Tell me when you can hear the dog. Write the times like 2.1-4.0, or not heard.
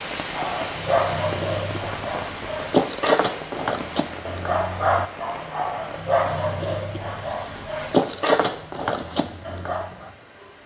0.2-10.1.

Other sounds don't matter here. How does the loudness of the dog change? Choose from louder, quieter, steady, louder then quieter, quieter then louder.
steady.